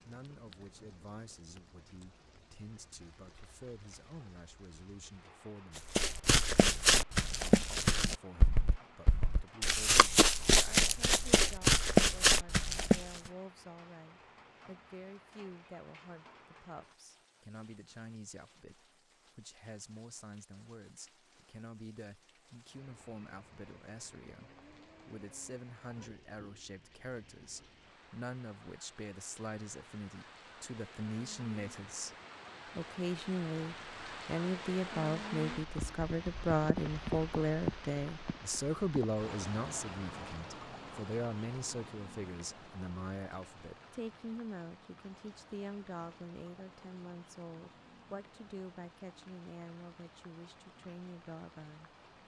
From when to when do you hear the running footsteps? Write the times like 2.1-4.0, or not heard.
5.8-13.3.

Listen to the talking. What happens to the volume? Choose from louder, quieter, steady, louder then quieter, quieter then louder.
louder then quieter.